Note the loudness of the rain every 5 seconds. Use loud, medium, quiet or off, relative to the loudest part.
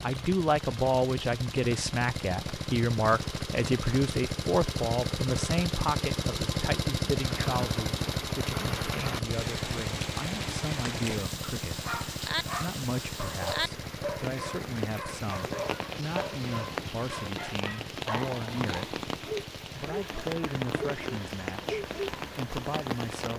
medium, loud, loud, loud, loud.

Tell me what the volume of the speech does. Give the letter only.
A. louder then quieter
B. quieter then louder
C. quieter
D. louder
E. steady
C.